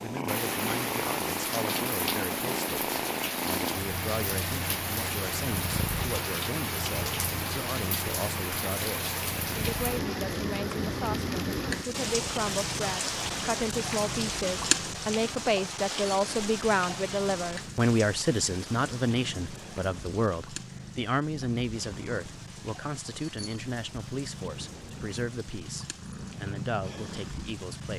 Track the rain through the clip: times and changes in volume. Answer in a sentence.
The rain can be heard from 0.2 to 27.9 s, getting quieter.